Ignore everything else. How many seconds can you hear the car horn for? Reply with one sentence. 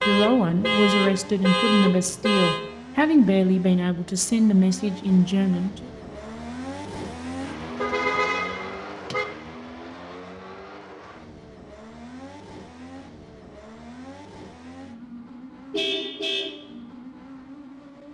You can hear the car horn for 5 seconds altogether.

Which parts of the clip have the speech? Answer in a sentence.
The speech can be heard from 0.1 to 5.9 s.